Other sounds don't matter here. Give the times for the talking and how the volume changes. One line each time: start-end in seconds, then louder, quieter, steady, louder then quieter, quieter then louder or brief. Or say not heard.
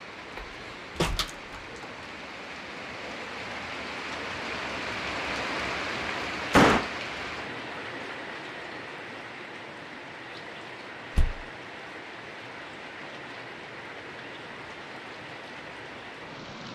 not heard.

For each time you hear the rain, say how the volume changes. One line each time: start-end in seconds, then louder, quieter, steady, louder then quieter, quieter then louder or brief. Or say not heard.
0.0-16.6 louder then quieter.